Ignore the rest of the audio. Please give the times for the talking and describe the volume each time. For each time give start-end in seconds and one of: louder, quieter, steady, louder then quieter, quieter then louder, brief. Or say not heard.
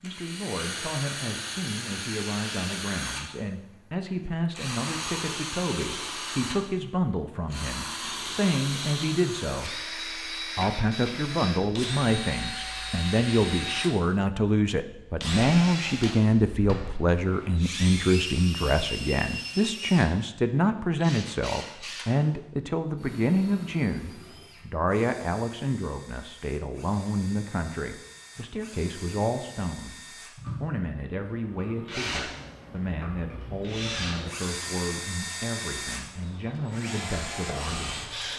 0.0-38.1 louder then quieter.